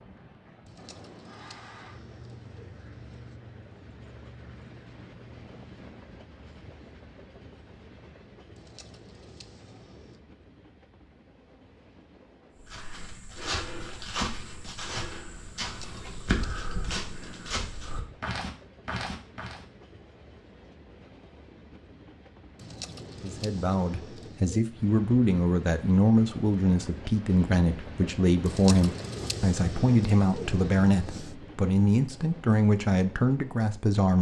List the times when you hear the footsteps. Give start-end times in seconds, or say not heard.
12.6-19.6.